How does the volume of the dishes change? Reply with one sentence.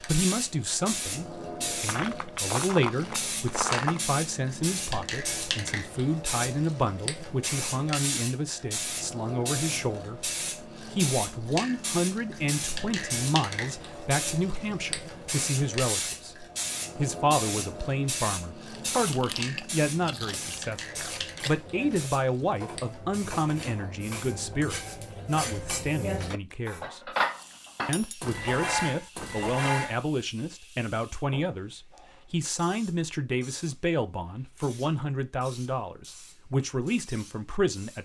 The loudness of the dishes goes up.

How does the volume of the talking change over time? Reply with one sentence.
The loudness of the talking stays about the same.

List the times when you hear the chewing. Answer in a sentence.
The chewing can be heard from 1.9 to 4.0 s, from 18.9 to 21.6 s and from 26.9 to 28.3 s.